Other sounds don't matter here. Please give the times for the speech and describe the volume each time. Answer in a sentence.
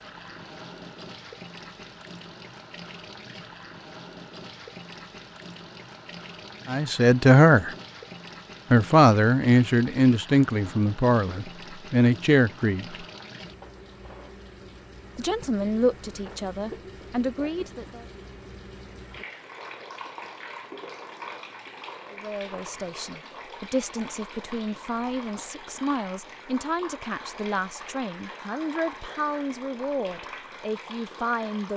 The speech can be heard briefly from 6.7 to 7.8 s; from 8.7 to 13.0 s, getting quieter then louder; briefly from 15.2 to 18.1 s; and from 22.1 to 31.7 s, at a steady volume.